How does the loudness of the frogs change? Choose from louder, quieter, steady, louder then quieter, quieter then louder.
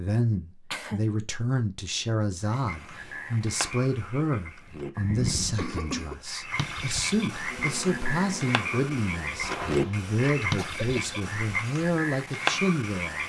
louder.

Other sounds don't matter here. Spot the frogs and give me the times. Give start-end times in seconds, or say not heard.
2.5-13.2.